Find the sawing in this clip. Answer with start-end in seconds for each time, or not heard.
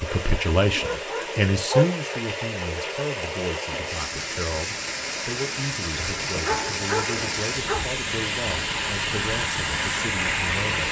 not heard.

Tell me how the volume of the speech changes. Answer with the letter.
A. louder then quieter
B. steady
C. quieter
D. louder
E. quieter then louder
C.